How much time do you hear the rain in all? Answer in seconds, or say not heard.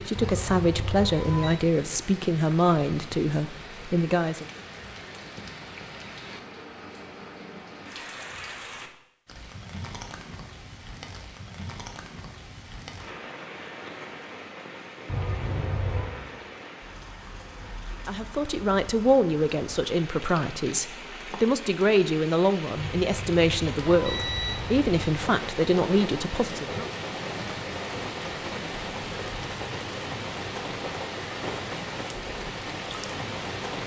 34 s.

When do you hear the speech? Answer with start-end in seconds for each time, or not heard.
0.0-4.5, 18.1-26.9.